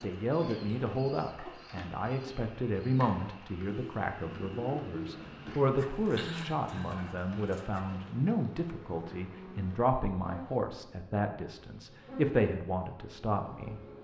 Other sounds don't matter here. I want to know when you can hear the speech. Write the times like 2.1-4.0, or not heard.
0.0-13.8.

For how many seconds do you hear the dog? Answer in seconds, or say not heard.
not heard.